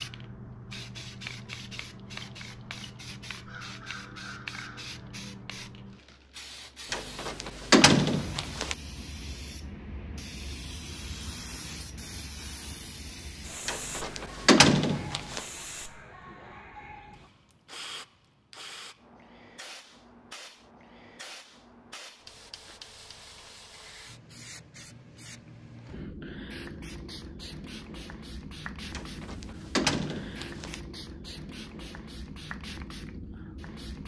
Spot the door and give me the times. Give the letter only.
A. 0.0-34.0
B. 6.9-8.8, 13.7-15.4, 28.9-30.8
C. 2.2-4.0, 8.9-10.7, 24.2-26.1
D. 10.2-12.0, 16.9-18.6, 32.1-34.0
B.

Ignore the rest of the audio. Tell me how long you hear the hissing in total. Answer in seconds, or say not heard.
34 s.